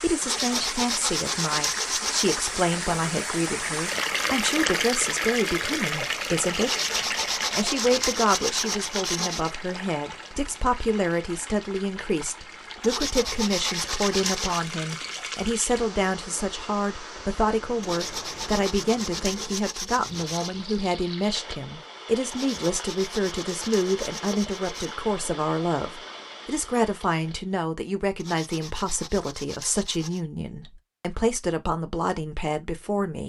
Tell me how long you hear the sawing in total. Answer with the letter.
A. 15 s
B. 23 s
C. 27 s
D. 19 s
A.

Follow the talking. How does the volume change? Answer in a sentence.
The volume of the talking stays about the same.